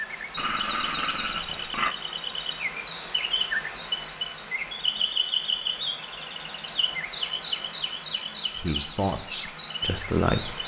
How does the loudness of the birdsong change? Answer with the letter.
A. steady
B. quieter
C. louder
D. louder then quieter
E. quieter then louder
D.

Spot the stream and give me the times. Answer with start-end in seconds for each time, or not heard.
0.0-10.6.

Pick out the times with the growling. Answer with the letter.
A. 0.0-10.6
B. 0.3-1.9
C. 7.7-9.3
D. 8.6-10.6
B.